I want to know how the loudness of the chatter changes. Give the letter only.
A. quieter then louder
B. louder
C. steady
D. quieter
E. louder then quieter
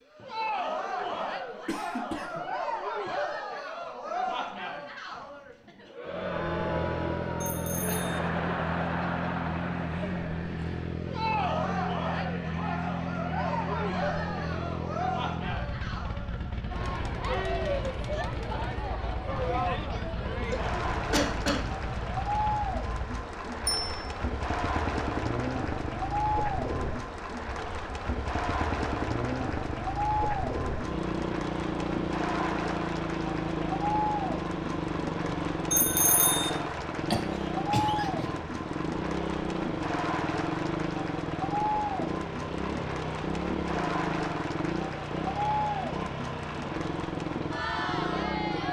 C.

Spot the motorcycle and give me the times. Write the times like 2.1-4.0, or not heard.
6.0-48.6.